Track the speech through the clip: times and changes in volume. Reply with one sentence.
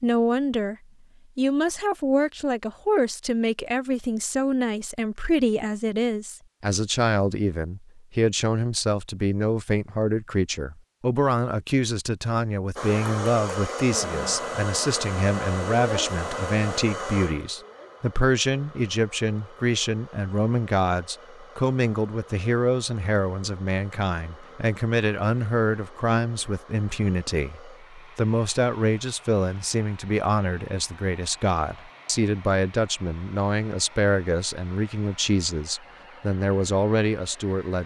The speech can be heard briefly from 0.0 to 0.8 s; and from 1.4 to 37.8 s, at a steady volume.